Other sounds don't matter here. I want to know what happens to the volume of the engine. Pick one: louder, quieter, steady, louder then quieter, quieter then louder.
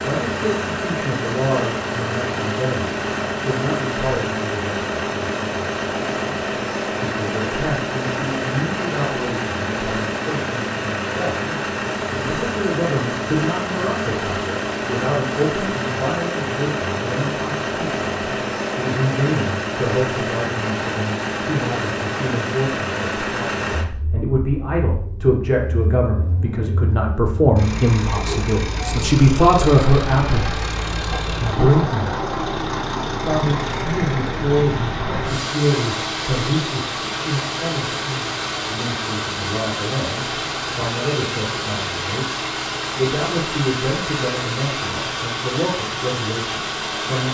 steady.